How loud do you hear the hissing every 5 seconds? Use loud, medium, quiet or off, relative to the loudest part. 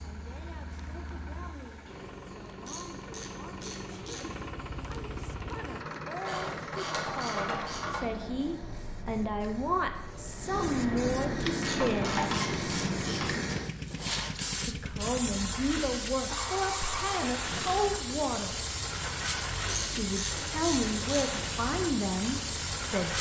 quiet, quiet, loud, loud, loud.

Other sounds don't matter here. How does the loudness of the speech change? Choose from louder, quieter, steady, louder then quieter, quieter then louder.
louder.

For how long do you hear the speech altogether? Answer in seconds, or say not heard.
19 s.